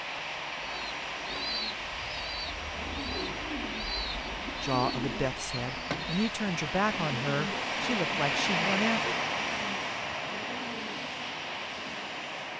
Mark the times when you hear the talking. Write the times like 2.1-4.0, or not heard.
4.6-9.2.